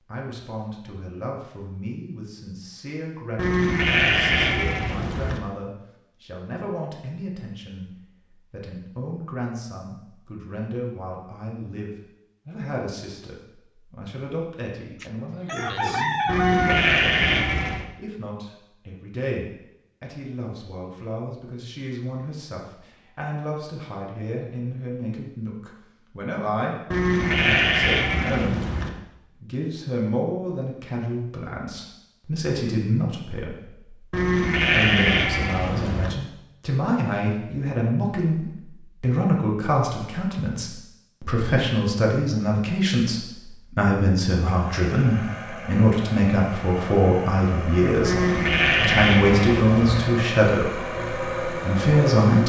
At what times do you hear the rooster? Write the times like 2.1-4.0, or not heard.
15.0-16.9.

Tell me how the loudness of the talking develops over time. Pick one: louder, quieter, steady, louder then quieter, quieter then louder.
louder.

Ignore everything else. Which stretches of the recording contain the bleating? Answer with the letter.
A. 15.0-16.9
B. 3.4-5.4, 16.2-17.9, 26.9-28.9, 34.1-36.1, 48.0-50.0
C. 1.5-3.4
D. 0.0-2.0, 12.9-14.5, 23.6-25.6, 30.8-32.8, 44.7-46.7
B.